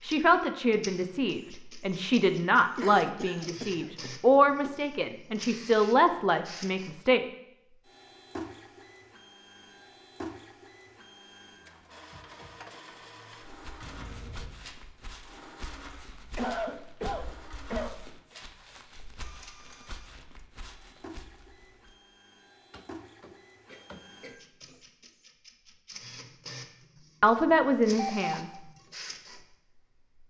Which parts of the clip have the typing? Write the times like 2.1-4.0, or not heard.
not heard.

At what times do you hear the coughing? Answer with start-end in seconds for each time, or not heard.
2.8-4.8, 16.4-18.4, 22.7-24.8.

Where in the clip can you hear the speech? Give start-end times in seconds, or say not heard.
0.0-7.2, 27.2-28.5.